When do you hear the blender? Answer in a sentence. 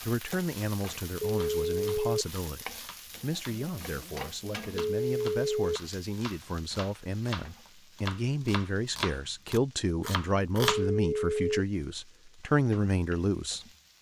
You can't hear the blender here.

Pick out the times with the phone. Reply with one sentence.
You can hear the phone from 1.2 to 2.2 s, from 4.8 to 5.8 s and from 10.6 to 11.6 s.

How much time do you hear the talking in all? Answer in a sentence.
The talking can be heard for 14 seconds in total.